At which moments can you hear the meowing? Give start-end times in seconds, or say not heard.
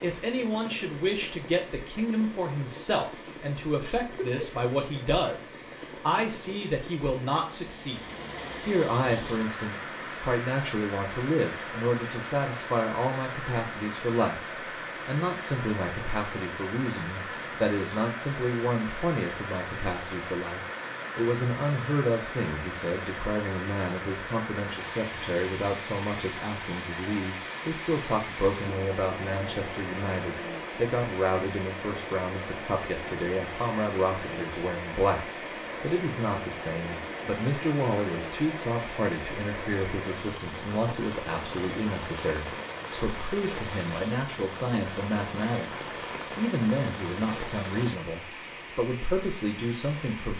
4.0-4.7.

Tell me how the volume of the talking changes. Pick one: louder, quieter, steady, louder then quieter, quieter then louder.
steady.